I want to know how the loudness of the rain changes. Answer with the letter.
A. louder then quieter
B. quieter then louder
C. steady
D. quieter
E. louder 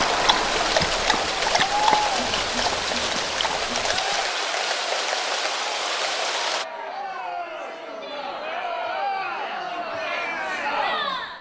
C.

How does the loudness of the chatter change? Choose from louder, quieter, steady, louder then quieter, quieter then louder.
quieter then louder.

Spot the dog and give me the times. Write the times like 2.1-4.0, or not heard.
0.0-4.2.